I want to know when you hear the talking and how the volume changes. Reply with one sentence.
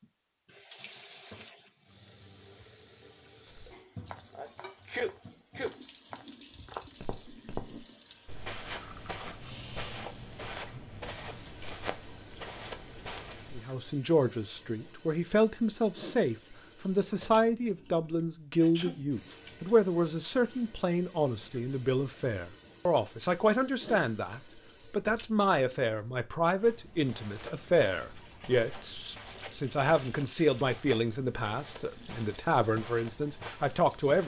The talking can be heard from 13.5 to 34.2 s, at a steady volume.